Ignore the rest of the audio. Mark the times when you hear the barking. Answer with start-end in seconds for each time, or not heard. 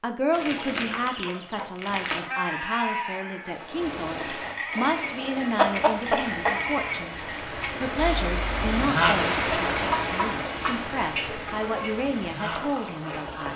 not heard.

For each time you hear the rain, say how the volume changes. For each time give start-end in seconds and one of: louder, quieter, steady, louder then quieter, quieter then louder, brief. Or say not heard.
3.4-13.5 louder then quieter.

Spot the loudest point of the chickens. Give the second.
6 s.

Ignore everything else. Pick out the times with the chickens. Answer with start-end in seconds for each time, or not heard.
0.3-2.3, 5.5-6.5, 9.7-11.9.